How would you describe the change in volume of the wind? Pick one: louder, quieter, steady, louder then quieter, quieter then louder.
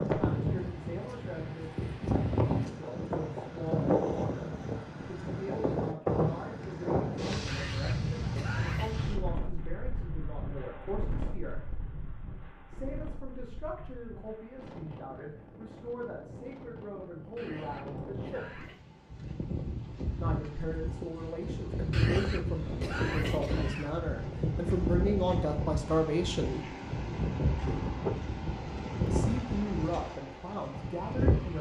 quieter then louder.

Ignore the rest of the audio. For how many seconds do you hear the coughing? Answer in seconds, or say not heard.
5 s.